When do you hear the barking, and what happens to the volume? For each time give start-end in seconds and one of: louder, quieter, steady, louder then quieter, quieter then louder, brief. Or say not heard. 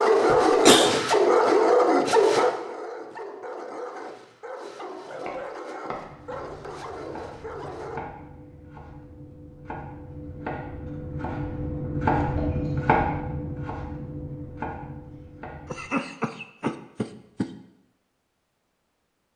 0.0-8.0 quieter.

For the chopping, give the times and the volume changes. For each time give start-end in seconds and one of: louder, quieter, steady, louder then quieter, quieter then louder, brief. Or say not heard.
5.2-15.8 louder then quieter.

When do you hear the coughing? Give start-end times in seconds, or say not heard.
0.2-0.9, 15.7-17.5.